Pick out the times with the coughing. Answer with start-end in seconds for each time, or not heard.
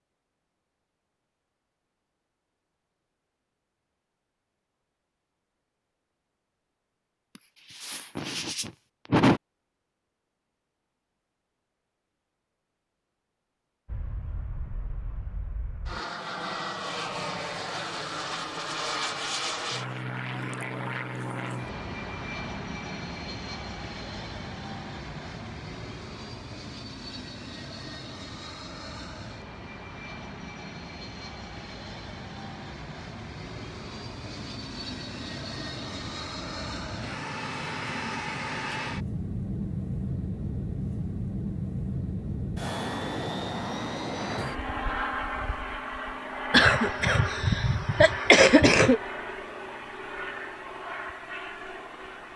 7.3-9.4, 46.5-49.0.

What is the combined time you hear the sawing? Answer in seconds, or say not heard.
not heard.